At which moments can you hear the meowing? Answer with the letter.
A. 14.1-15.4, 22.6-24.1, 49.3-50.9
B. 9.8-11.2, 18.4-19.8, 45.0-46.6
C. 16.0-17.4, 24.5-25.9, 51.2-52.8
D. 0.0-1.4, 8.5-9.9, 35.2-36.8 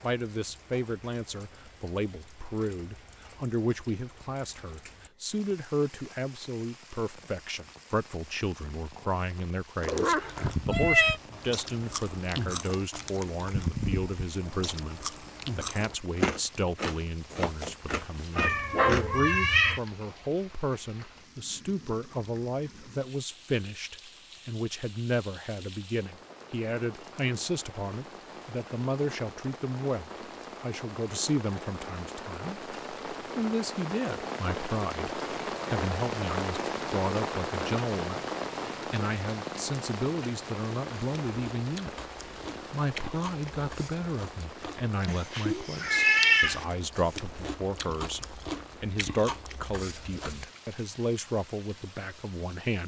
B.